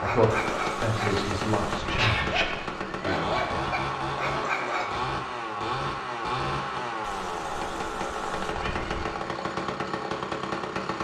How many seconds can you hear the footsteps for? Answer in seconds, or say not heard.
not heard.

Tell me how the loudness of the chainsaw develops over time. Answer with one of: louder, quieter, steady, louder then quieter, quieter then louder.
steady.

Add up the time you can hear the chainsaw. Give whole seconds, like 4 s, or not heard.
11 s.